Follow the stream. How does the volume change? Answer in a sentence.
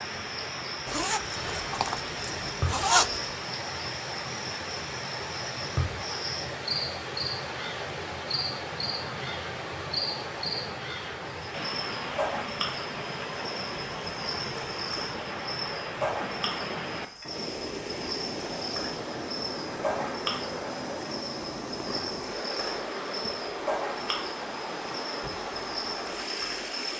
The volume of the stream stays about the same.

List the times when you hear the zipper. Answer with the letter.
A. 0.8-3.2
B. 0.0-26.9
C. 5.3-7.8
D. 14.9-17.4
A.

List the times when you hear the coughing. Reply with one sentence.
You can't hear the coughing here.